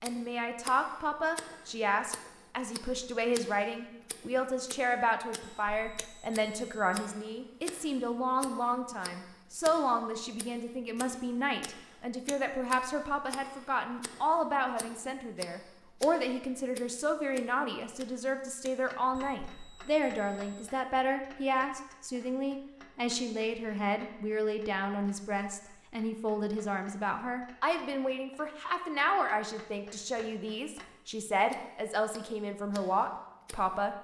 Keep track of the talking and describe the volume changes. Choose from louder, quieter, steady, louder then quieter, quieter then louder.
steady.